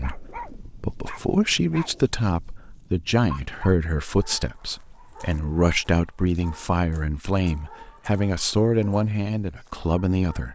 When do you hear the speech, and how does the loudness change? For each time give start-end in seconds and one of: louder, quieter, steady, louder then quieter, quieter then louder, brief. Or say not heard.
0.0-10.5 steady.